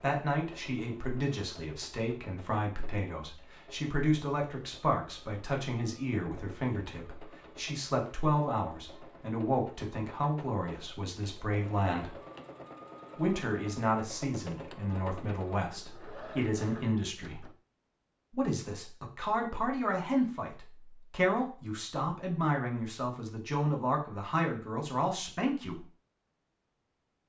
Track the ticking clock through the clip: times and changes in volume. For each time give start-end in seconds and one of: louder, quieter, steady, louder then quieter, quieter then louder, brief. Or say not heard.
not heard.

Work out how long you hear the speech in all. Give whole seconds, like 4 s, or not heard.
24 s.